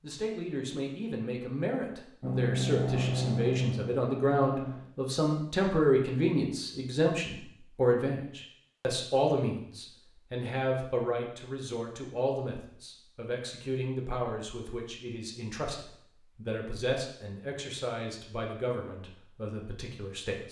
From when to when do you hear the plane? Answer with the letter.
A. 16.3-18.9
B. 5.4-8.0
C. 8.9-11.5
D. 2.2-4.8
D.